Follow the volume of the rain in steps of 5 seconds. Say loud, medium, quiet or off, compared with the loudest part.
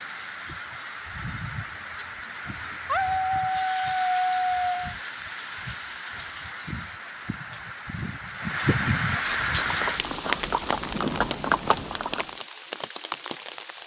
medium, loud, loud.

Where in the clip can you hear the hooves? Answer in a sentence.
You can hear the hooves from 9.2 to 12.3 s.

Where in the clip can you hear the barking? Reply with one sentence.
The barking can be heard from 2.9 to 4.7 s.